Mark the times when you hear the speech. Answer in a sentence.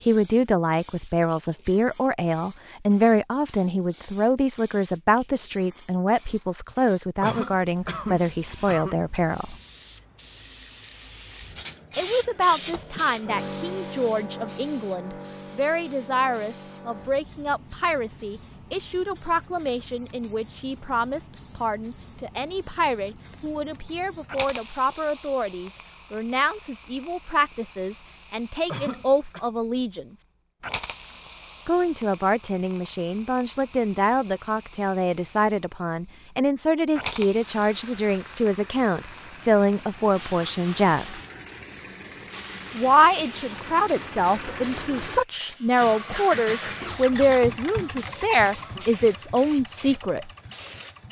You can hear the speech from 0.1 to 9.6 s, from 11.9 to 30.1 s, from 31.6 to 41.2 s and from 42.8 to 50.3 s.